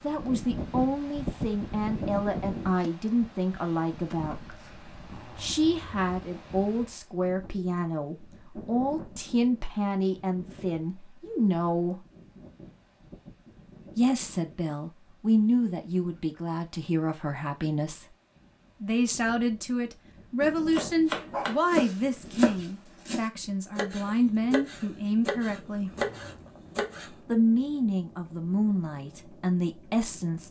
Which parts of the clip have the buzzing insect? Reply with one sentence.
The buzzing insect can't be heard in this clip.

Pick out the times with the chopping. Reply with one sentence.
The chopping can be heard from 20.7 to 27.1 s.